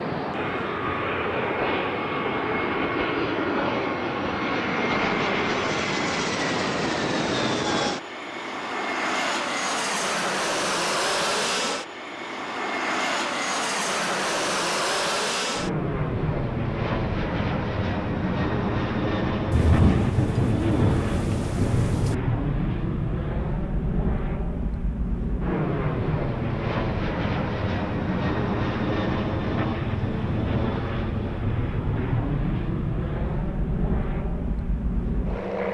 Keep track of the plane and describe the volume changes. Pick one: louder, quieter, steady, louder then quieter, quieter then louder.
steady.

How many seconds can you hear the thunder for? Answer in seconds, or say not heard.
3 s.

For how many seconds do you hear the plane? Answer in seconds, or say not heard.
36 s.